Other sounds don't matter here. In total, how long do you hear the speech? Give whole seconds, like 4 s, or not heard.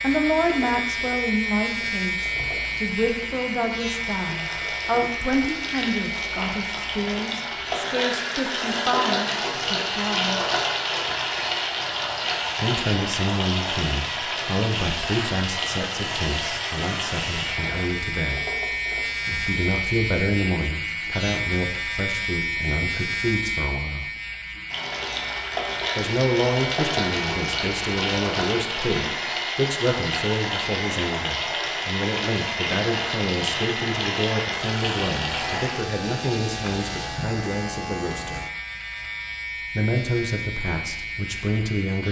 36 s.